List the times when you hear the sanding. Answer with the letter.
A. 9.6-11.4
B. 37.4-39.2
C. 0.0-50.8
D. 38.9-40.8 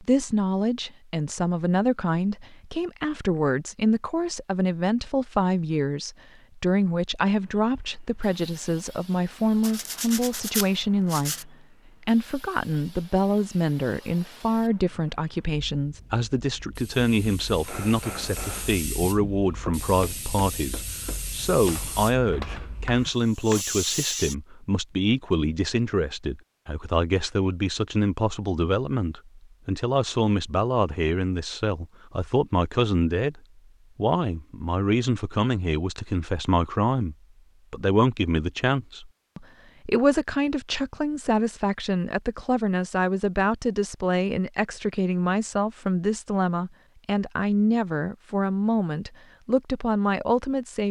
A.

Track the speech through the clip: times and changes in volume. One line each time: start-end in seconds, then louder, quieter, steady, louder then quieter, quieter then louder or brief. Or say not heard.
0.0-50.8 steady.